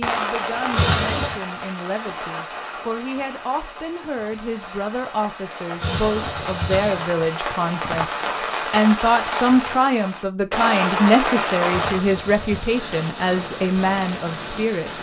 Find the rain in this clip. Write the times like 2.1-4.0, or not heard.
0.0-14.9.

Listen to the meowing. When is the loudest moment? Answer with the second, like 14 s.
1 s.